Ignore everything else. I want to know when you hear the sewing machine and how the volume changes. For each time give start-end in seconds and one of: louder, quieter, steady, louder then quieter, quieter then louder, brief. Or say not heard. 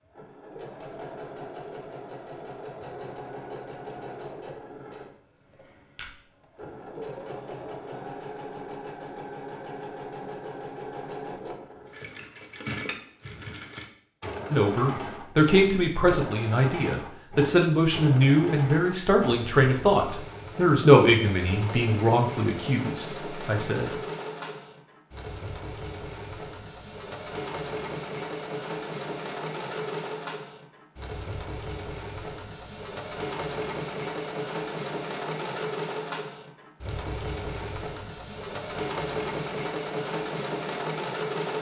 0.0-41.5 louder.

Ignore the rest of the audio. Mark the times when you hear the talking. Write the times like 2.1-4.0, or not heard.
14.5-23.9.